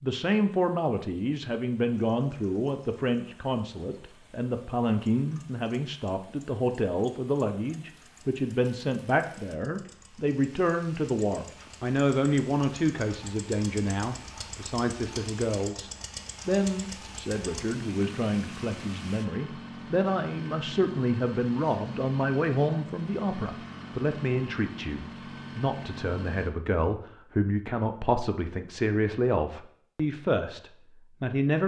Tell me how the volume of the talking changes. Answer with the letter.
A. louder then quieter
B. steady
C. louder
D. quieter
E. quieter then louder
B.